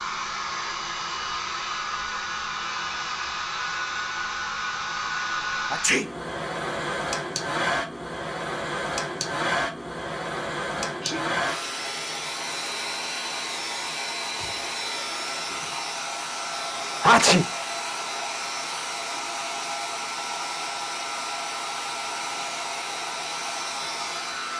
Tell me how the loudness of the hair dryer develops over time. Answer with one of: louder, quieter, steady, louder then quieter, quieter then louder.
steady.